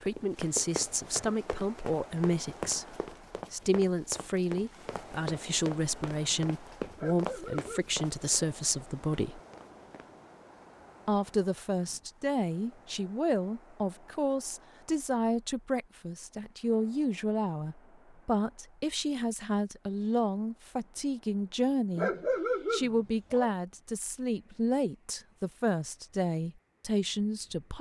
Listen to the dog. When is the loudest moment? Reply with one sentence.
The volume of the dog peaks at 22 seconds.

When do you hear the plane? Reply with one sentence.
You can't hear the plane here.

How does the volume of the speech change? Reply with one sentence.
The loudness of the speech stays about the same.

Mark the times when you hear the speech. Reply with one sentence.
The speech can be heard from 0.0 to 9.4 s, from 11.1 to 22.1 s and from 22.7 to 27.7 s.